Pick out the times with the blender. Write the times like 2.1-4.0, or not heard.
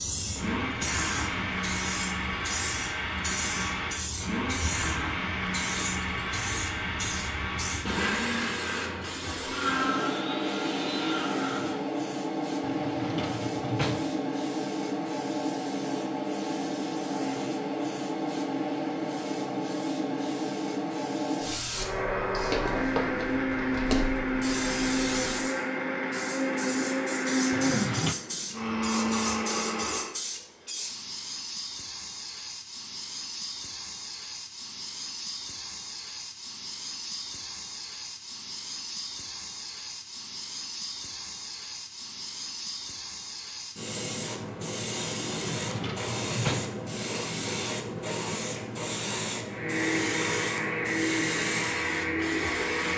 0.3-11.8, 21.7-30.1, 49.5-52.9.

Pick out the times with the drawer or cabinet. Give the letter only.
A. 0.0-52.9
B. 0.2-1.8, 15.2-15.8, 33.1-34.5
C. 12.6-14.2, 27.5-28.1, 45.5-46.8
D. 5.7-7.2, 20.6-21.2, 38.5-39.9
C.